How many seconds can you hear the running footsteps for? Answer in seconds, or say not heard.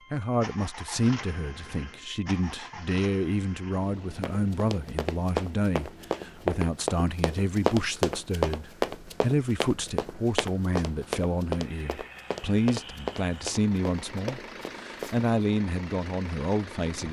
11 s.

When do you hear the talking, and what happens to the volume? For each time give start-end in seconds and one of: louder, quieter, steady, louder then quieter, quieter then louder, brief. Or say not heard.
0.1-17.0 steady.